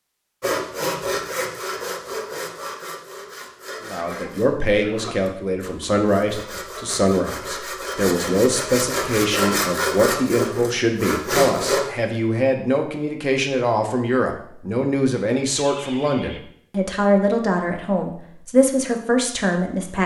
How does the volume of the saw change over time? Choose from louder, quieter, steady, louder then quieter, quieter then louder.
quieter then louder.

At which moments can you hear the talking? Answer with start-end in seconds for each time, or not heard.
3.8-20.0.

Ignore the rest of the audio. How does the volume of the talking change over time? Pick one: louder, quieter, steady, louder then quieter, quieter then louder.
steady.